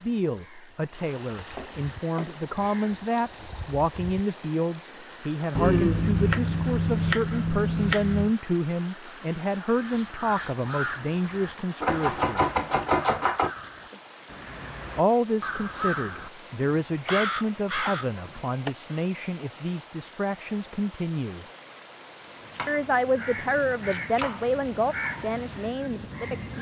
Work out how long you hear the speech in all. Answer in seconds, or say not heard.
23 s.